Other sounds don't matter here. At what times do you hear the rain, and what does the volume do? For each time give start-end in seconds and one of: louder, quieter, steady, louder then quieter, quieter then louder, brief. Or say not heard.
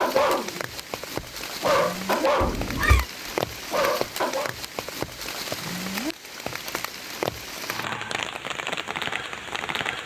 0.0-10.0 steady.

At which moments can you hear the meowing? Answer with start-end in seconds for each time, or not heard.
2.4-3.0.